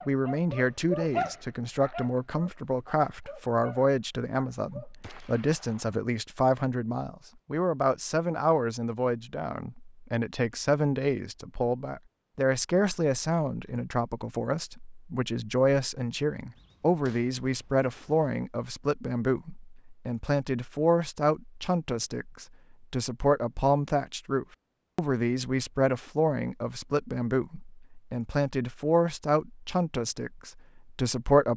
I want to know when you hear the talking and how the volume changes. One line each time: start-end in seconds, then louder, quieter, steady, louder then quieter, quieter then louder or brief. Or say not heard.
0.1-31.5 steady.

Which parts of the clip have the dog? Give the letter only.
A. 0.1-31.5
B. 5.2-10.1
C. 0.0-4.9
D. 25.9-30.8
C.